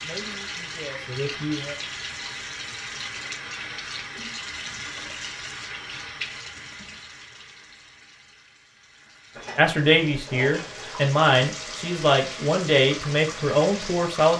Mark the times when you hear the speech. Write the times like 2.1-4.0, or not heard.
0.0-1.8, 9.6-14.3.